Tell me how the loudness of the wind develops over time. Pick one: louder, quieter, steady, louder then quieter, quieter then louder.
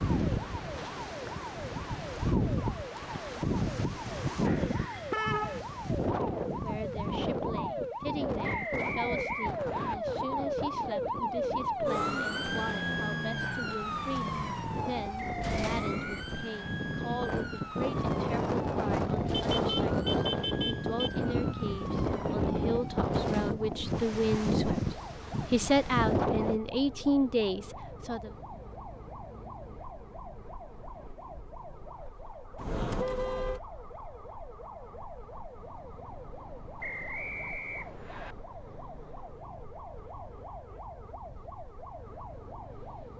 quieter then louder.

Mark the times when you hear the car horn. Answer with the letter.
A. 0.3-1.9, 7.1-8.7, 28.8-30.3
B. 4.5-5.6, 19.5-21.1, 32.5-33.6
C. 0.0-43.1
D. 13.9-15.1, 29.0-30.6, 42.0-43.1
B.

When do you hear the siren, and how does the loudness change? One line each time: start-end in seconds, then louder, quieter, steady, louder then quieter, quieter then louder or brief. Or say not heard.
0.0-43.1 louder then quieter.